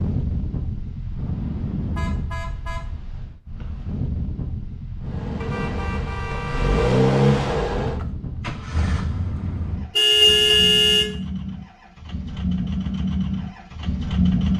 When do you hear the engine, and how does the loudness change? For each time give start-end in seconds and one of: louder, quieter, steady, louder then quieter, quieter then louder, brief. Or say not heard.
5.0-14.5 quieter then louder.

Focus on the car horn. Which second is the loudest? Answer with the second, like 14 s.
10 s.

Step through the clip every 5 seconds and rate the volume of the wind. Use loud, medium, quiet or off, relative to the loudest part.
loud, loud, off.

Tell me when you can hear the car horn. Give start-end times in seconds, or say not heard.
1.9-2.9, 5.4-6.9, 9.9-11.1.